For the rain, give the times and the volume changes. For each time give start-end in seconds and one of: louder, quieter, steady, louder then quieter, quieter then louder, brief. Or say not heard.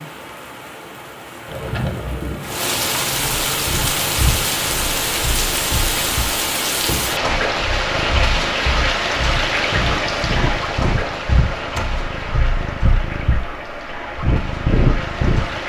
0.0-15.6 louder then quieter.